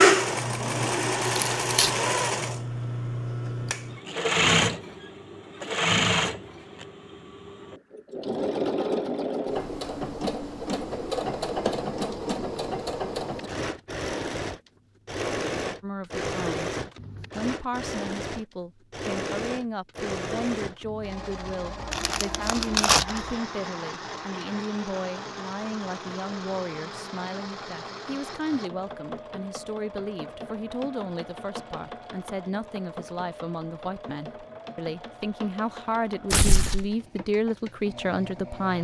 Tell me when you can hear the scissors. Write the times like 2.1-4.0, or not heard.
not heard.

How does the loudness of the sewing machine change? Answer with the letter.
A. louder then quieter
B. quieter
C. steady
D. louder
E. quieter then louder
B.